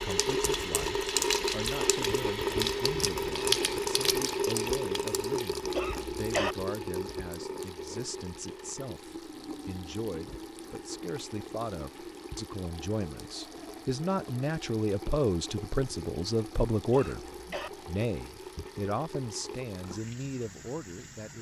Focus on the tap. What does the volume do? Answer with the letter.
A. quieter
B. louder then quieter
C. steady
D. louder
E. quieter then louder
A.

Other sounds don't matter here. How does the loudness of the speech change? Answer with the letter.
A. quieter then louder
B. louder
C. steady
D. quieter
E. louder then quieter
B.